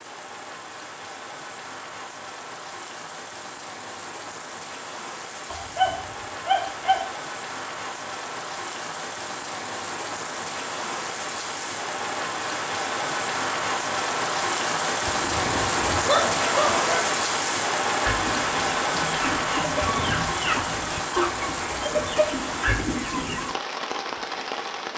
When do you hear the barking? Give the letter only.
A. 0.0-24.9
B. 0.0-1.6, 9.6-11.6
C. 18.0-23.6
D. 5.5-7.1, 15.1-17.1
D.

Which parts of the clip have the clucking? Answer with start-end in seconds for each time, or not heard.
18.0-23.6.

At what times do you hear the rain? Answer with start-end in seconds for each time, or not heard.
0.0-24.9.